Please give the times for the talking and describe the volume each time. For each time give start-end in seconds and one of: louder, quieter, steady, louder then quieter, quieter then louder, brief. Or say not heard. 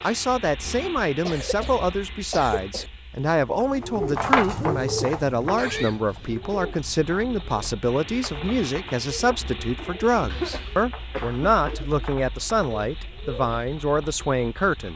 0.0-14.9 steady.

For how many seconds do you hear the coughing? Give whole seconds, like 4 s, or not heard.
4 s.